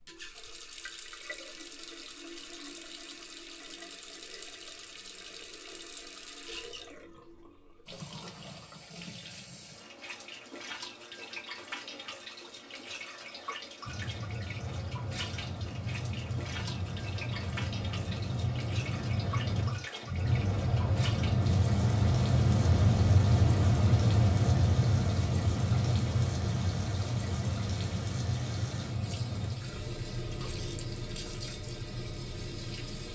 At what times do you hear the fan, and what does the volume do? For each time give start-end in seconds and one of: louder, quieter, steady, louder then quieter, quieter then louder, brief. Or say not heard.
13.8-33.0 louder then quieter.